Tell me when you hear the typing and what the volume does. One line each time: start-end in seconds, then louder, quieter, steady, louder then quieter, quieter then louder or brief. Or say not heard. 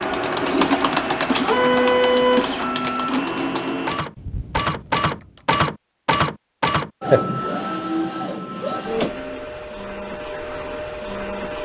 0.0-5.6 quieter.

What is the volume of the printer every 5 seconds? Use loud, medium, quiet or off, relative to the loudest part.
loud, loud, medium.